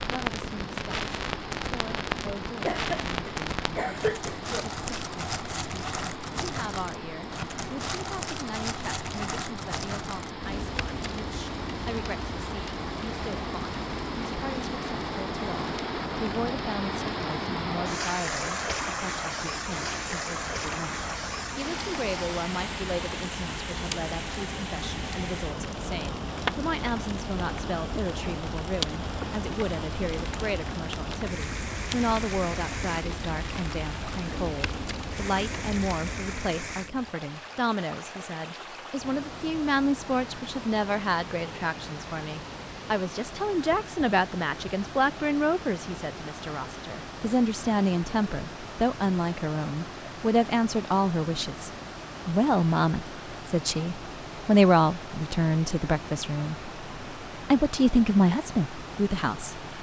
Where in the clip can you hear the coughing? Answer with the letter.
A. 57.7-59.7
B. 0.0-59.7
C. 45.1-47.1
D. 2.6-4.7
D.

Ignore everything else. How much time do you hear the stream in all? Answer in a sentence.
You can hear the stream for 60 seconds altogether.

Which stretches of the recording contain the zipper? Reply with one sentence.
You can't hear the zipper here.